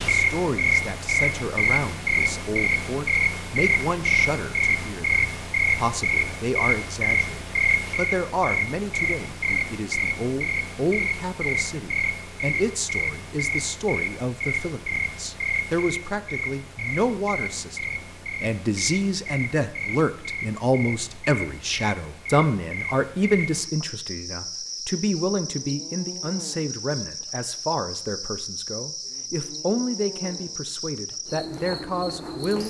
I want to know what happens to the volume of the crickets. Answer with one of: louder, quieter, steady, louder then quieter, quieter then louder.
quieter.